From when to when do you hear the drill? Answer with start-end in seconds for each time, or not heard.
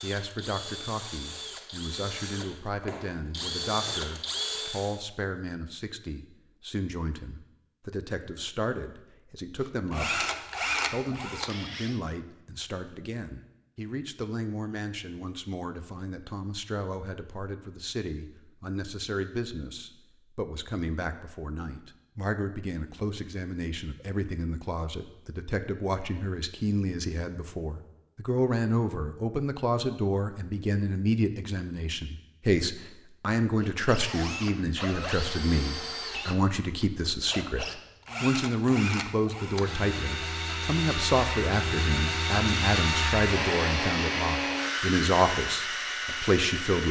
0.0-5.0, 9.6-12.0, 33.6-46.8.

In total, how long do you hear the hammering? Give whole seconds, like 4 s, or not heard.
not heard.